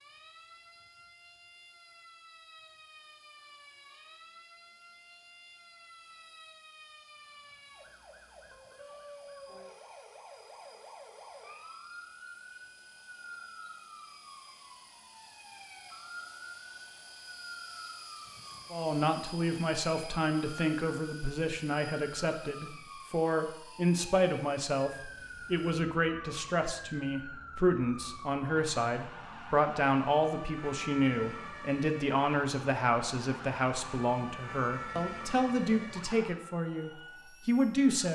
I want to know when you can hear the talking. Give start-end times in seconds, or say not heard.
18.7-38.1.